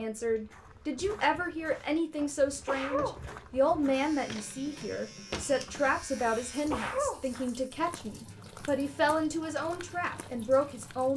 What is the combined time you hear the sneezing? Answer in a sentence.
The sneezing can be heard for 4 seconds in total.